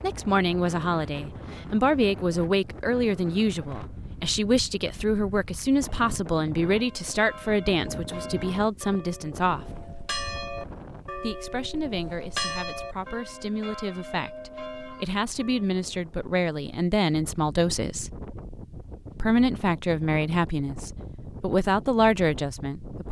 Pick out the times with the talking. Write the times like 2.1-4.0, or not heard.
0.0-9.7, 11.2-18.1, 19.1-23.0.